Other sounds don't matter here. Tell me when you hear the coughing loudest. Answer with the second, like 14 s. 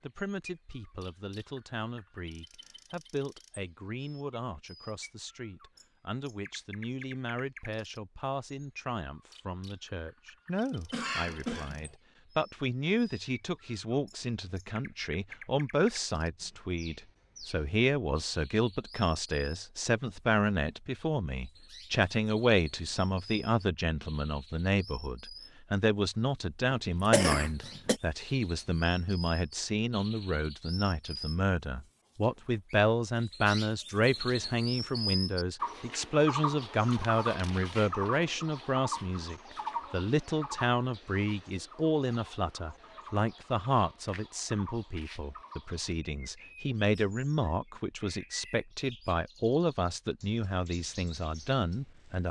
27 s.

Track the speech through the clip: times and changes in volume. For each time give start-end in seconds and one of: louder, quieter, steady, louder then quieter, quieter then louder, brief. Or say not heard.
0.0-52.2 louder.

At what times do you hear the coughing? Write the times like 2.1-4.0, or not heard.
10.9-11.9, 26.7-27.9.